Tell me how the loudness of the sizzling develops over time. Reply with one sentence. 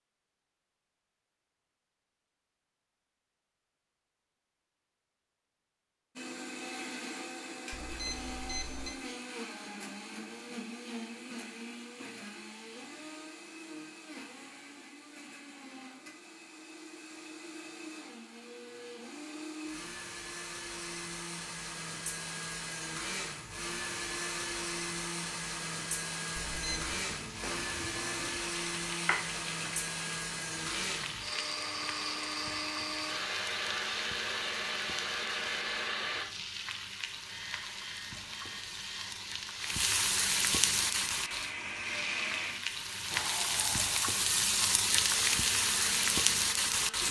The volume of the sizzling goes up.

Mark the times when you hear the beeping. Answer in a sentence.
You can hear the beeping from 7.7 to 8.9 s, from 26.4 to 26.9 s and from 37.2 to 39.1 s.